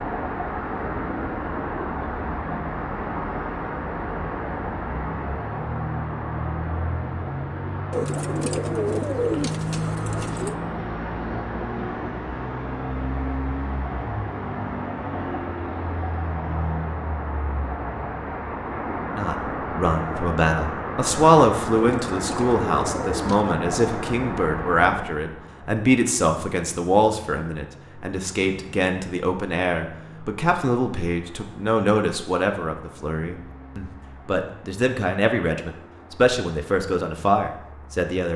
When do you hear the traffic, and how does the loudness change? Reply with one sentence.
The traffic can be heard from 0.0 to 38.1 s, getting quieter.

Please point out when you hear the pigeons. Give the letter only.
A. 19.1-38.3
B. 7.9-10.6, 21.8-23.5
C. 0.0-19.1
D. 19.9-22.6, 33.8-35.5
B.